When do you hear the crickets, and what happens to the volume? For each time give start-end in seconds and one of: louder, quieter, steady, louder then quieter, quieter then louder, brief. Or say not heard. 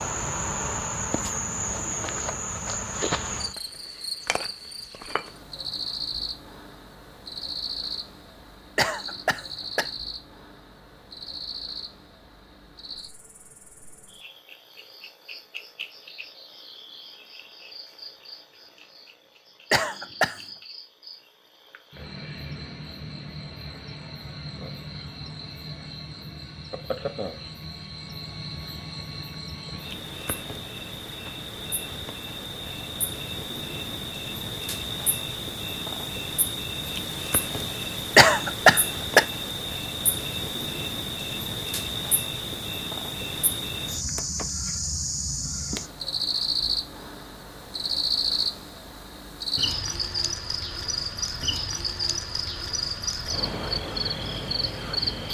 0.0-55.2 quieter then louder.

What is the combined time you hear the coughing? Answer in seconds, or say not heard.
3 s.